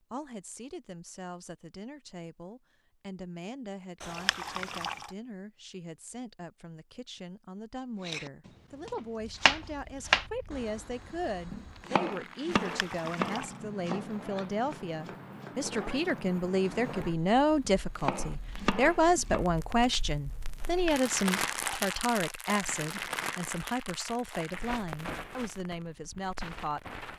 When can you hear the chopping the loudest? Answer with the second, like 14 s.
10 s.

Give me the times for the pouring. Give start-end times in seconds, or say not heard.
4.0-5.1, 12.5-13.6, 20.6-22.1.